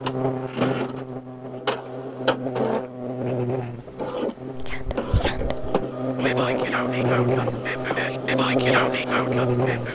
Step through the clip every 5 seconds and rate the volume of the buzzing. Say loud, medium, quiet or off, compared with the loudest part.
medium, loud.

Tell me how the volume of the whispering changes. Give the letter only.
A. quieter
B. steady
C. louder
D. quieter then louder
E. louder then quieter
C.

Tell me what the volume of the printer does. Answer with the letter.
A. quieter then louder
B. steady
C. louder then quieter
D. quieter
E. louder
B.